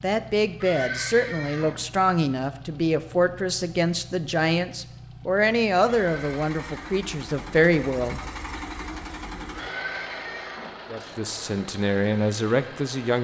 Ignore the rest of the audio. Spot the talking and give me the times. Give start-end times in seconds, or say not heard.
0.0-8.2, 10.9-13.1.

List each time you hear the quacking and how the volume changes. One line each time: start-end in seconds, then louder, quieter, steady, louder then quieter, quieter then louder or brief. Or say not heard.
not heard.